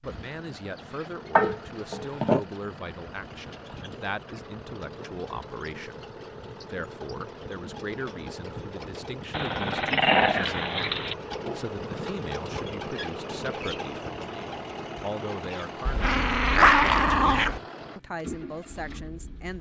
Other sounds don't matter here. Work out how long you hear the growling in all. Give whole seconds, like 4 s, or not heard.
5 s.